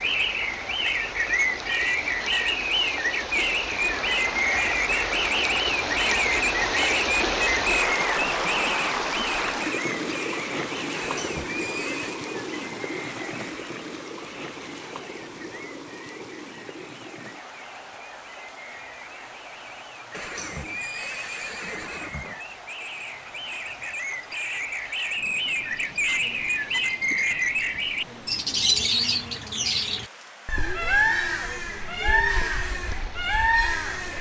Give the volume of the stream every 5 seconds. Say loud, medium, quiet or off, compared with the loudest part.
medium, loud, medium, quiet, quiet, quiet, quiet.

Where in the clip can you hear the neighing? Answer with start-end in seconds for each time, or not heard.
10.9-12.2, 20.1-22.4.